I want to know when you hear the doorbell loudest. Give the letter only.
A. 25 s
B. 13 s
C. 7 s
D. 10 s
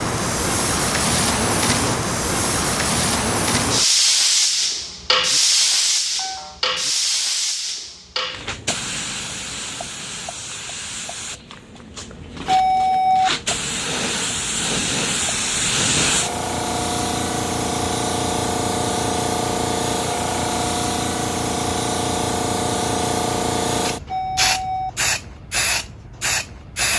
B.